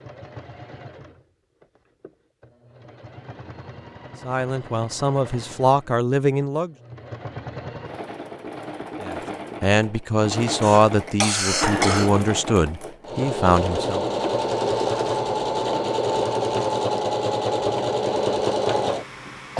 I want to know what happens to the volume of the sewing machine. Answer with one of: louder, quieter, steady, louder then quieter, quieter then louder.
louder.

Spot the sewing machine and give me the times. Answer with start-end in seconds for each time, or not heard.
0.0-19.5.